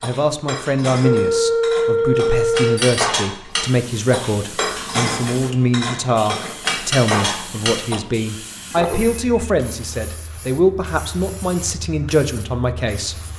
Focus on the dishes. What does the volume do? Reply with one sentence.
The loudness of the dishes goes up.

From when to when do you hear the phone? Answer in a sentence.
You can hear the phone from 1.0 to 3.0 s and from 8.7 to 9.5 s.